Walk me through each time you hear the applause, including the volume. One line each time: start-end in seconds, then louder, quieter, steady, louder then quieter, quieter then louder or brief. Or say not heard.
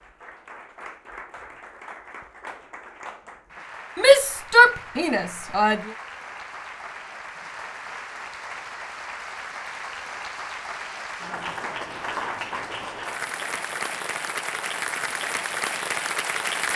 0.0-16.7 louder.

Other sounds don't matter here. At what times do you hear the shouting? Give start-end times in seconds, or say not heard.
4.0-5.9.